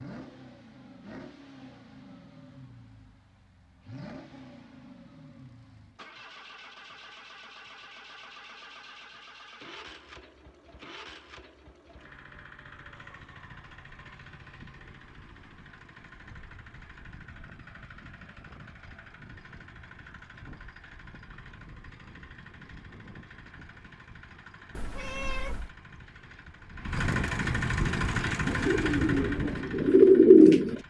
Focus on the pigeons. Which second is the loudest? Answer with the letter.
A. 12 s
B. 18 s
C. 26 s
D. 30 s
D.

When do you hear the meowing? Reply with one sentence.
You can hear the meowing from 24.8 to 25.8 s.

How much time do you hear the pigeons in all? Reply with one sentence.
The pigeons can be heard for 3 seconds in total.